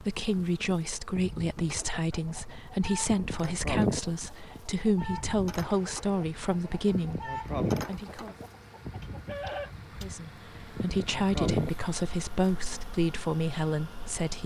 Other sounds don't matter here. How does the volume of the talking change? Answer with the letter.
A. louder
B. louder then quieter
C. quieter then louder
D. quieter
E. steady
E.